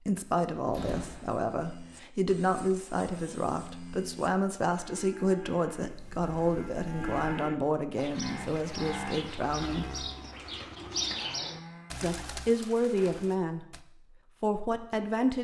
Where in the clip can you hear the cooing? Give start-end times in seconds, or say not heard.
8.0-13.8.